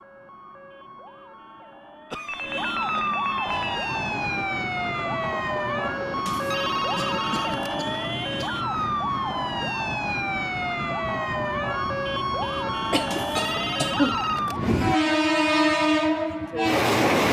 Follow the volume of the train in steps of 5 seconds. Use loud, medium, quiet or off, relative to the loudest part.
quiet, quiet, medium, loud.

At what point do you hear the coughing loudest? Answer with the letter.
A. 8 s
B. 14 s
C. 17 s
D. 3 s
B.